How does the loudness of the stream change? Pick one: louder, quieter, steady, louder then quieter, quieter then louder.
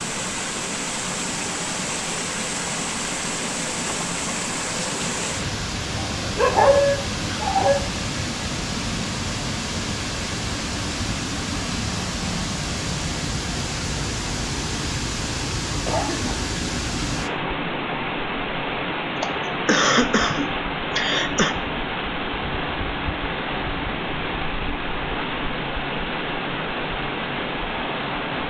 steady.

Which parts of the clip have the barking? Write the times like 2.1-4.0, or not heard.
6.0-7.8.